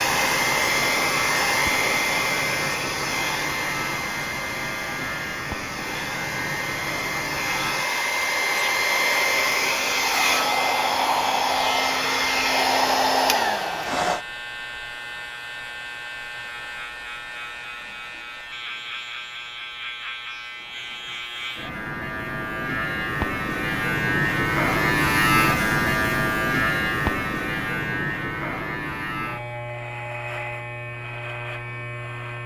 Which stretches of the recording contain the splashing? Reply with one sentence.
The splashing can't be heard in this clip.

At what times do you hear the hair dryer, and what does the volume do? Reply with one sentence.
The hair dryer can be heard from 0.0 to 14.2 s, getting quieter then louder.